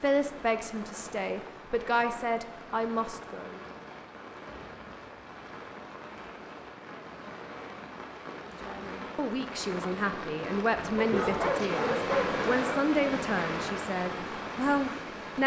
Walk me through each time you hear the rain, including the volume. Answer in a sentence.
You can hear the rain from 0.0 to 15.4 s, getting louder.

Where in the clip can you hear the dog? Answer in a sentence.
The dog can be heard from 10.9 to 12.9 s.